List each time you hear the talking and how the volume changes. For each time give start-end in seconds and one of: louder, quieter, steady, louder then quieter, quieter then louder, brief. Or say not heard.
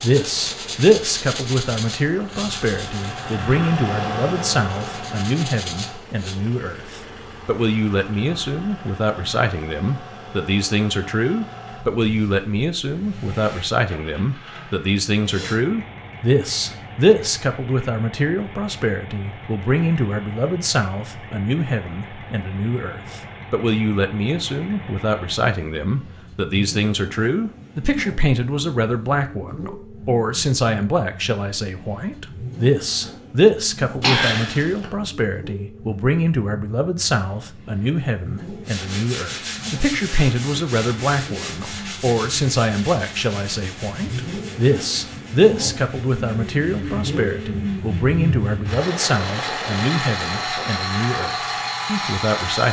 0.0-52.6 steady.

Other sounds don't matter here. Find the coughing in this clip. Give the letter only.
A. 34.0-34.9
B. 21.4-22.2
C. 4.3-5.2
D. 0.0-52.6
A.